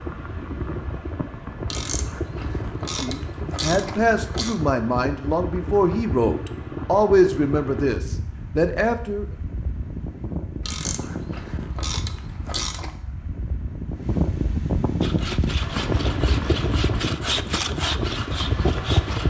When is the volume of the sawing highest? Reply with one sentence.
The volume of the sawing peaks at 17 seconds.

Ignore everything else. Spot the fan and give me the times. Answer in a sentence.
The fan can be heard from 0.0 to 19.2 s.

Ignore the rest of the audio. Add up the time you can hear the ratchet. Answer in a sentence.
The ratchet can be heard for 5 seconds in total.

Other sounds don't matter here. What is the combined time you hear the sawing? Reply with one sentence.
You can hear the sawing for 4 seconds altogether.